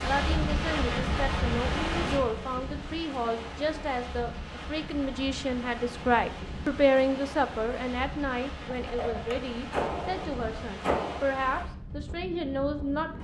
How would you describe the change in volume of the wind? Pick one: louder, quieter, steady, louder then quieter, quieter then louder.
quieter.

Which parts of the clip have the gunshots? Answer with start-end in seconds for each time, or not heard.
8.7-11.2.